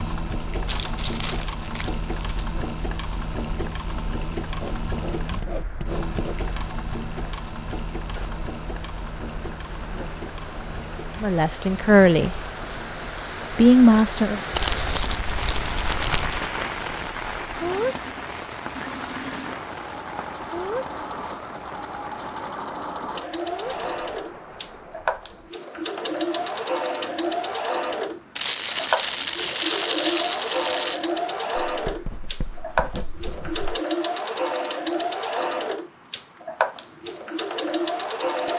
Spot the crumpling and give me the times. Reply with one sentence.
You can hear the crumpling from 0.7 to 2.5 s, from 14.5 to 16.5 s and from 28.4 to 31.1 s.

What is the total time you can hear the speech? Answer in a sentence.
The speech can be heard for 2 seconds in total.